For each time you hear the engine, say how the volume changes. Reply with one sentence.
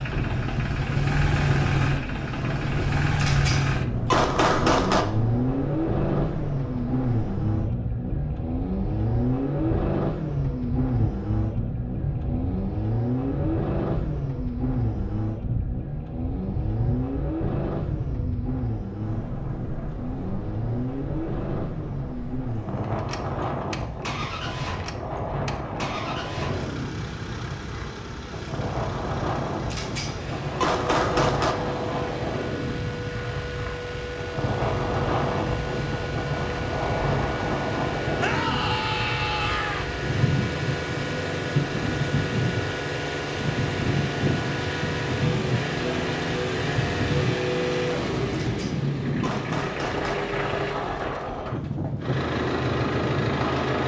The engine can be heard from 0.0 to 53.8 s, getting quieter then louder.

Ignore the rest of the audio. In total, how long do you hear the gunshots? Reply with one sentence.
The gunshots can be heard for 6 seconds in total.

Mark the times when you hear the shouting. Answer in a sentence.
The shouting can be heard from 38.1 to 39.9 s.